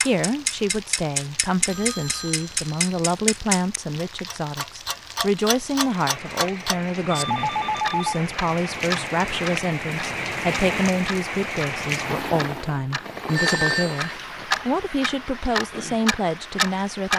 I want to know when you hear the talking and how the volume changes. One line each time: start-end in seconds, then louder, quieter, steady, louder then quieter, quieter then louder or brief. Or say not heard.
0.0-17.1 steady.